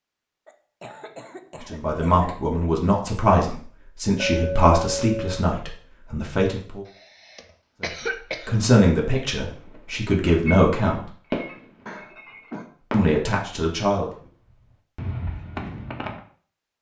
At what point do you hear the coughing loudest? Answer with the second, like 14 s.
8 s.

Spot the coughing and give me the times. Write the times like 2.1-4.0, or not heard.
0.5-2.4, 6.8-8.6, 11.8-12.7.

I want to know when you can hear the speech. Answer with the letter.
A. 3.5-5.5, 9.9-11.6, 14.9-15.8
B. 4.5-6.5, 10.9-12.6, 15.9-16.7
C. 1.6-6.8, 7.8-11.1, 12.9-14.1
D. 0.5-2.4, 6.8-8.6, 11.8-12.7
C.